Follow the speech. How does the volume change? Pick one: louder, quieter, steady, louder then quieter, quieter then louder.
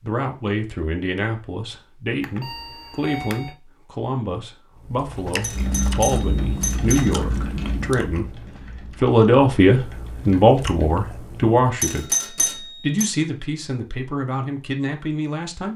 louder then quieter.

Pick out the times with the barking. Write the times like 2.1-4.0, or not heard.
not heard.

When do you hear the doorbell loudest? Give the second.
12 s.